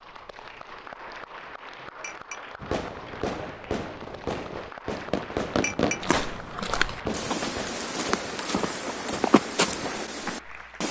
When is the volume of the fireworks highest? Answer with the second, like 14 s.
6 s.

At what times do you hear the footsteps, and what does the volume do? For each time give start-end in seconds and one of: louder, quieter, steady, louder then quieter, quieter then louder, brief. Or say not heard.
6.0-10.8 steady.